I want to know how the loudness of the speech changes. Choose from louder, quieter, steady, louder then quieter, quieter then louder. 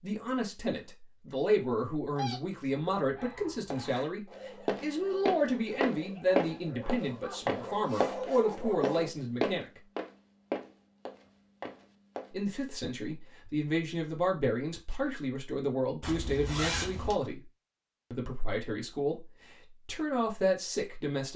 steady.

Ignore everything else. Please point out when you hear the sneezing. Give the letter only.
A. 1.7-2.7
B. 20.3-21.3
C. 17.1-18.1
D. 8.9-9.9
A.